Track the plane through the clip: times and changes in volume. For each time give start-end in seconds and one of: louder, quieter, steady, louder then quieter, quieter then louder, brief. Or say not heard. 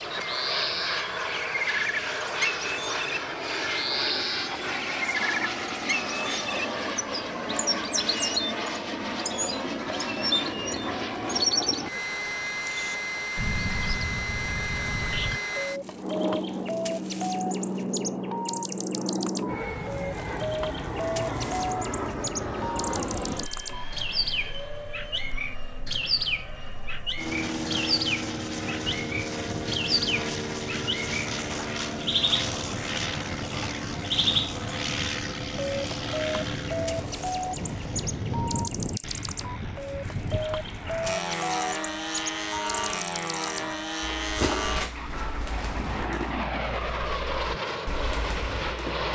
0.0-49.1 steady.